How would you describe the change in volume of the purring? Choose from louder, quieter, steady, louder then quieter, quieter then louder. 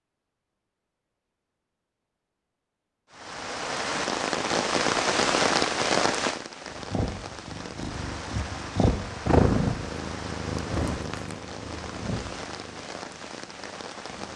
louder then quieter.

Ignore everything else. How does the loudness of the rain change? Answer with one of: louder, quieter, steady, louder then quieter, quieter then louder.
quieter.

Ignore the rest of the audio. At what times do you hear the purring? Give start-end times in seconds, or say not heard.
6.7-14.3.